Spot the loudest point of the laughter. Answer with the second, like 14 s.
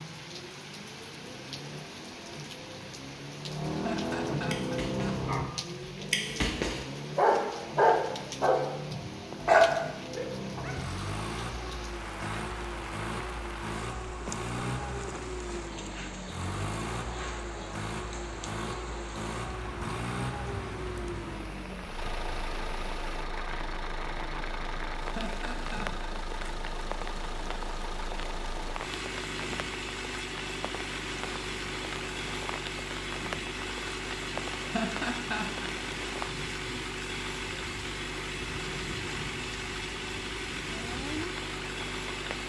35 s.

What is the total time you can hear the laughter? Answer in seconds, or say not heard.
4 s.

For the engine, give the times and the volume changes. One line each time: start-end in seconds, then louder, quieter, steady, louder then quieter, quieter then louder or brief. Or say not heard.
0.0-42.4 steady.